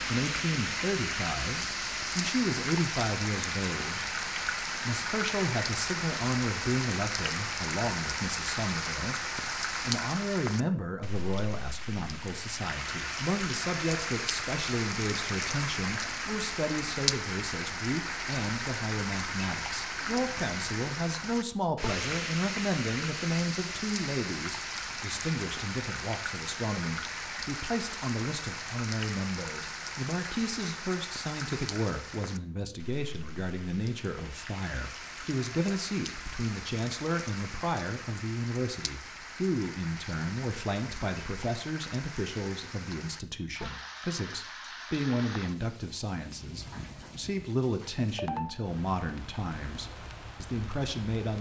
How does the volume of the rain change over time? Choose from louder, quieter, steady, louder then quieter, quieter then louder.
quieter.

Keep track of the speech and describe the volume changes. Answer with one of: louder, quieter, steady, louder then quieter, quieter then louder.
steady.